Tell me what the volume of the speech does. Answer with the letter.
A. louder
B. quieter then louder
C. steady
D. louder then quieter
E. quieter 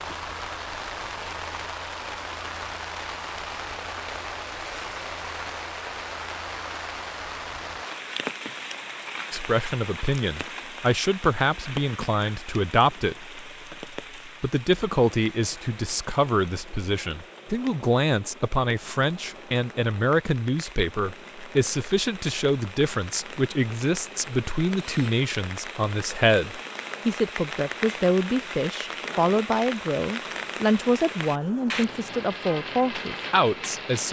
C.